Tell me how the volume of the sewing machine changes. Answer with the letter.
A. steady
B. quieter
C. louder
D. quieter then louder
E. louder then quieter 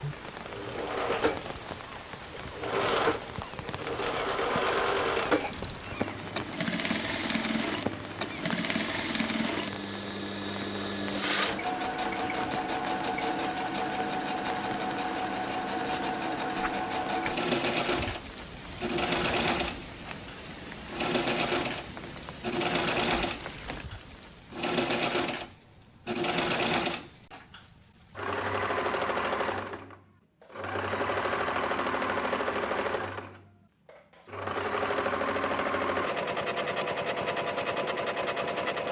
A.